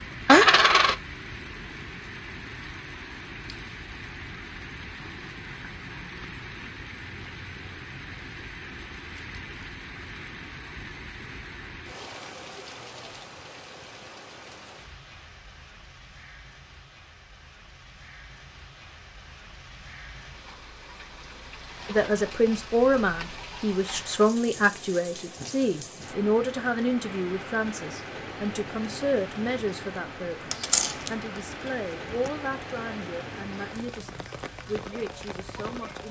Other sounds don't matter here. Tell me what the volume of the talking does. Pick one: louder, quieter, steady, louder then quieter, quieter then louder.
quieter.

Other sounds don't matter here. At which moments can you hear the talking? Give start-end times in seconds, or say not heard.
21.9-36.0.